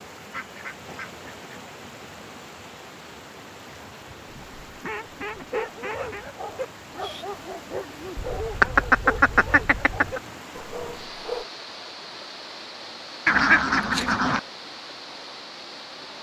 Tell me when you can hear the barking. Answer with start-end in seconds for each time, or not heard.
5.5-11.4.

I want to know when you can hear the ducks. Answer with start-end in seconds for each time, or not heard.
0.3-2.0, 4.2-6.2, 8.2-10.2, 13.2-14.4.